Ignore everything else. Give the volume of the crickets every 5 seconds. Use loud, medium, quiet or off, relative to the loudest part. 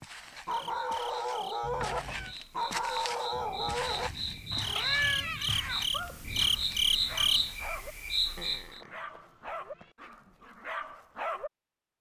medium, loud, off.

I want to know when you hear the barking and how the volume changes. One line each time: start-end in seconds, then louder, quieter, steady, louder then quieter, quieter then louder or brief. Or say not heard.
0.5-11.5 quieter.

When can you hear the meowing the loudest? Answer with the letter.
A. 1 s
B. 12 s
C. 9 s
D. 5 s
D.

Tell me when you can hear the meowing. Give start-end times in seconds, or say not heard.
1.6-2.4, 4.7-5.3, 8.3-9.9.